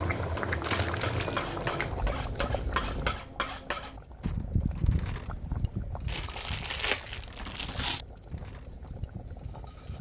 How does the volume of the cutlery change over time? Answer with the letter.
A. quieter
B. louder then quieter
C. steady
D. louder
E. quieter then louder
A.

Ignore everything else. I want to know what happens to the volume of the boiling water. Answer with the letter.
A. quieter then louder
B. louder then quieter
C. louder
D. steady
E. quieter
E.